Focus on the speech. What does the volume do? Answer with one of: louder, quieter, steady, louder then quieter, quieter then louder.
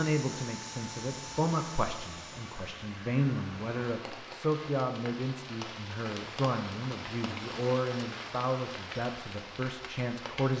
steady.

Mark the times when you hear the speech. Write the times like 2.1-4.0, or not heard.
0.0-10.5.